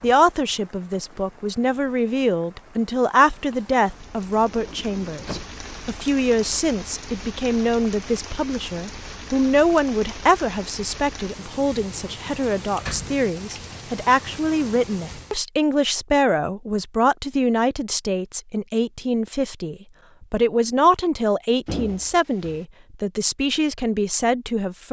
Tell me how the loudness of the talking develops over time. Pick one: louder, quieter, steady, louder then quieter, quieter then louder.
steady.